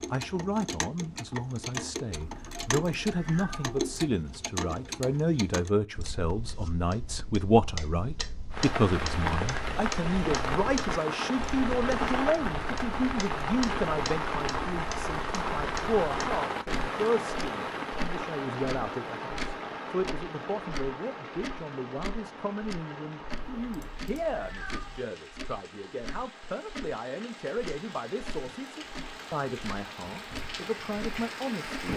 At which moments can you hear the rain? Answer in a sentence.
You can hear the rain from 8.5 to 31.9 s.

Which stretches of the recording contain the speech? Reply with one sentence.
The speech can be heard from 0.1 to 31.9 s.